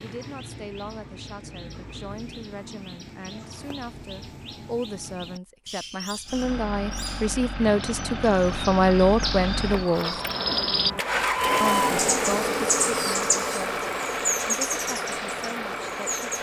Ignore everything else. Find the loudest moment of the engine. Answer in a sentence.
The volume of the engine peaks at 12 seconds.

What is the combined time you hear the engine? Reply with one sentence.
The engine can be heard for 10 seconds in total.